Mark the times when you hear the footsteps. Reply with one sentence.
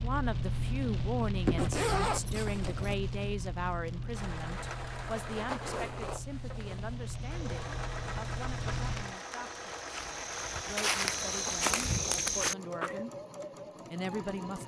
The footsteps can be heard from 7.0 to 13.0 s.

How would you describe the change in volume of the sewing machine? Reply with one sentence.
The loudness of the sewing machine stays about the same.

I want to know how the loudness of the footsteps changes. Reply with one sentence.
The loudness of the footsteps goes up.